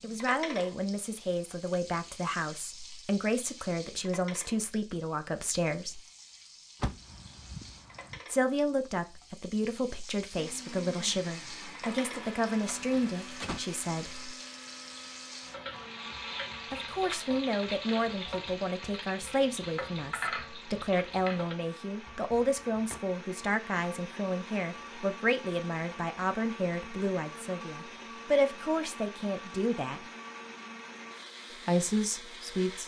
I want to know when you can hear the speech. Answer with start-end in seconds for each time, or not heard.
0.0-6.0, 8.2-14.3, 16.7-30.1, 31.6-32.8.